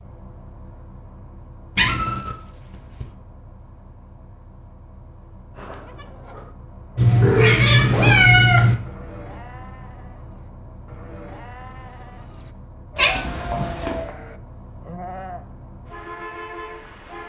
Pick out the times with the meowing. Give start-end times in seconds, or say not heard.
1.8-2.4, 7.0-8.8, 12.9-14.1.